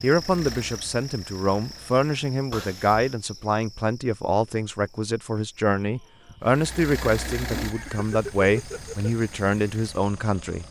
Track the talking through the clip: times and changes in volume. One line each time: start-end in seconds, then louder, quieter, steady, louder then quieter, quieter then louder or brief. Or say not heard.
0.0-10.6 steady.